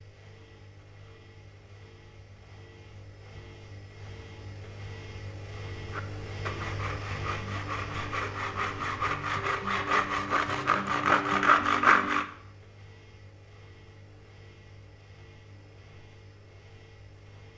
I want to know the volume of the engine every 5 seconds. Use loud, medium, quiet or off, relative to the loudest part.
medium, loud, quiet, quiet.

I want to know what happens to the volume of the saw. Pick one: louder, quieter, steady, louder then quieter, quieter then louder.
louder.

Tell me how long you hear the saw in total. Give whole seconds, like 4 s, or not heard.
6 s.